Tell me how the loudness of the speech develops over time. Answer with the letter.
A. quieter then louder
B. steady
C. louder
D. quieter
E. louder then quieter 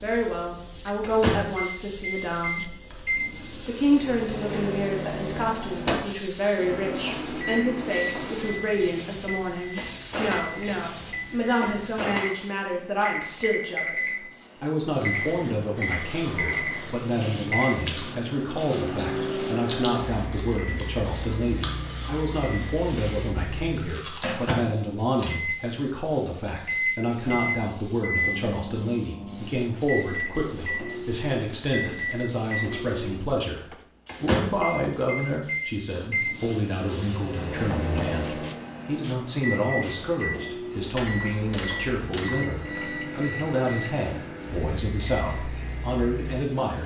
B.